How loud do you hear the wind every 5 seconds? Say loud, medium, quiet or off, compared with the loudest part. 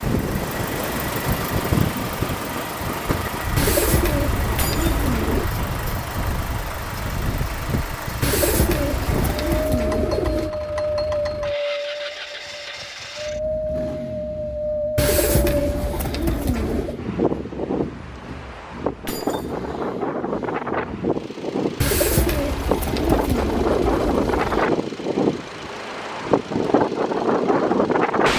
medium, medium, medium, medium, loud, loud.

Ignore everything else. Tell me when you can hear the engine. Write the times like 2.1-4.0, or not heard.
0.0-28.3.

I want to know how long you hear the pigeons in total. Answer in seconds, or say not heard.
9 s.